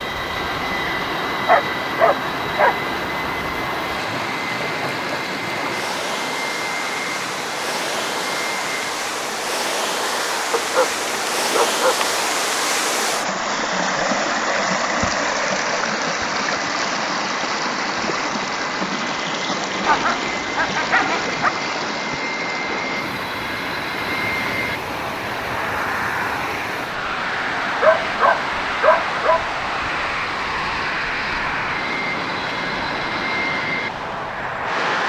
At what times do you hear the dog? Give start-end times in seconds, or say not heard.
1.4-2.8, 10.5-12.3, 19.8-21.5, 27.8-29.4.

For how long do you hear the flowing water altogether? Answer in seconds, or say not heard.
35 s.